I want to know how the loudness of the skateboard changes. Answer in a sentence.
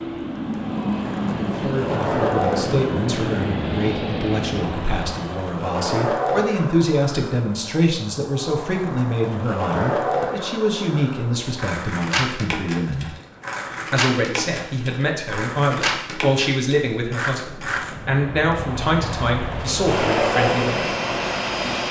The volume of the skateboard stays about the same.